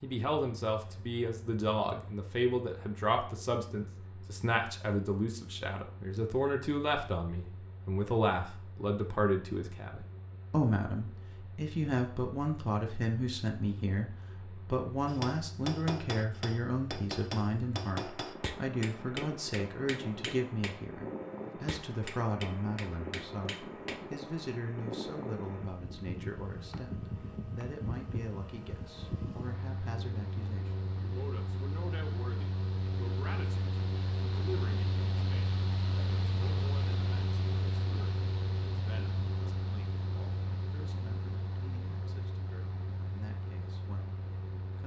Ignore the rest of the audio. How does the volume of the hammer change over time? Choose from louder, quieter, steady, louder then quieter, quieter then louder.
quieter.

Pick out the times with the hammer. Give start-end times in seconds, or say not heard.
15.1-24.1.